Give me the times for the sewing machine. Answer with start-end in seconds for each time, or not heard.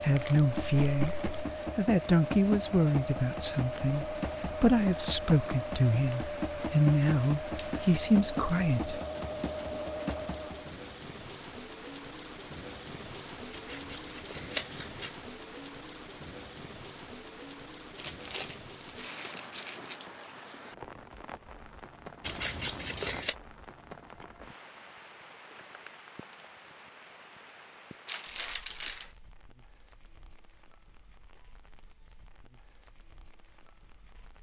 0.0-10.8.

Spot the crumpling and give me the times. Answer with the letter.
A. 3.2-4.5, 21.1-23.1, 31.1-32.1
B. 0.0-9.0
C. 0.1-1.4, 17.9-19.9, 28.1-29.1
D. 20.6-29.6
C.